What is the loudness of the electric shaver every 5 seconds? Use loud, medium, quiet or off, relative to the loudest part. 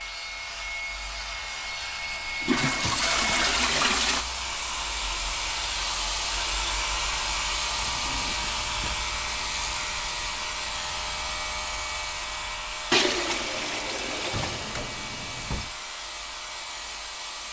medium, loud, loud, medium.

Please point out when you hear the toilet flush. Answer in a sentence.
You can hear the toilet flush from 2.4 to 4.2 s and from 12.9 to 14.7 s.